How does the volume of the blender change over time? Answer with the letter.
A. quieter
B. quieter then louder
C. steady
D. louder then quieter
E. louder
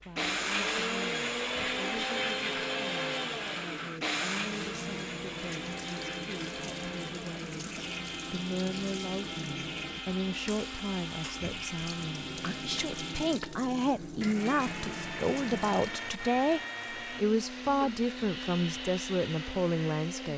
A.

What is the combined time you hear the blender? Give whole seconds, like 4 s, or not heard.
20 s.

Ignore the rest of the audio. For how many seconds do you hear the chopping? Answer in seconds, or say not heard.
not heard.